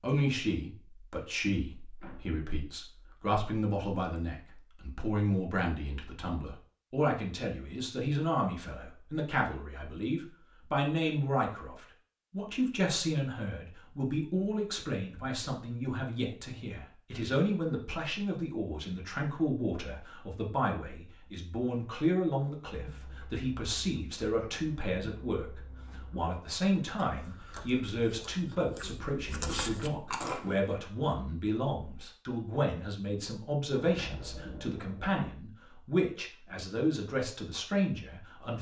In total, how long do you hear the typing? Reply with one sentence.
The typing can't be heard in this clip.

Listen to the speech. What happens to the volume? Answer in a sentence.
The volume of the speech stays about the same.